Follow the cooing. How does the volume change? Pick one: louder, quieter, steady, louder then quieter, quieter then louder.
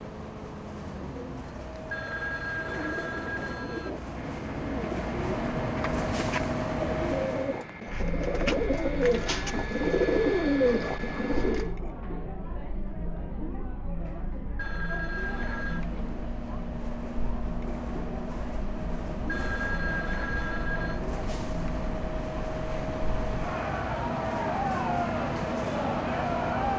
louder.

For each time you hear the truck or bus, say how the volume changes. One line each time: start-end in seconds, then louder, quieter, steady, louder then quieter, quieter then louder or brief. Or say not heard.
0.0-7.7 louder
14.9-26.7 louder.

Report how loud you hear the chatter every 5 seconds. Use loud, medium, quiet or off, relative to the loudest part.
off, medium, medium, medium, loud, loud.